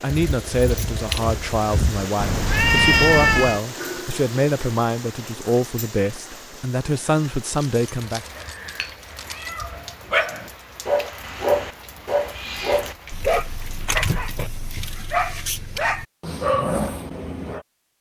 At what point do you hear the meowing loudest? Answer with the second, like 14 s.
3 s.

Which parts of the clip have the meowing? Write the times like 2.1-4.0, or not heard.
2.2-3.6, 8.3-9.9, 12.2-12.8.